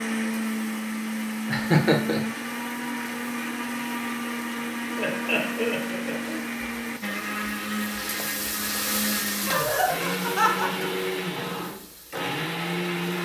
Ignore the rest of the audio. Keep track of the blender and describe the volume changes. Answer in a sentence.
The loudness of the blender stays about the same.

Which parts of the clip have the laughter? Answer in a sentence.
You can hear the laughter from 1.4 to 2.2 s, from 5.0 to 6.5 s and from 9.4 to 11.0 s.